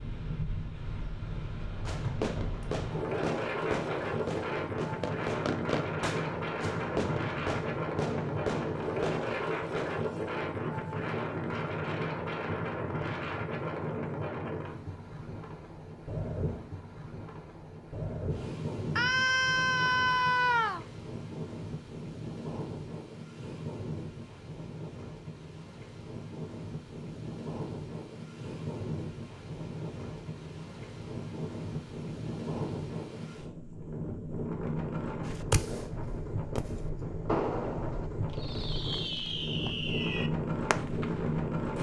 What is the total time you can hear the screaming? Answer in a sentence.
You can hear the screaming for 2 seconds altogether.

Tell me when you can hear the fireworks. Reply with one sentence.
You can hear the fireworks from 1.6 to 9.9 s and from 35.2 to 41.5 s.